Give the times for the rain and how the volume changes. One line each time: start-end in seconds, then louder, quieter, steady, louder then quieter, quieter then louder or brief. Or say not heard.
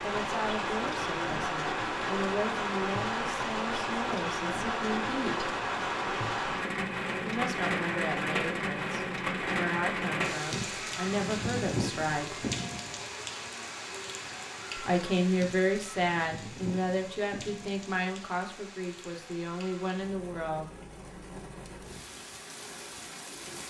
0.0-23.6 quieter.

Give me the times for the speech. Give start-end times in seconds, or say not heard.
0.0-5.5, 7.2-12.3, 14.8-20.6.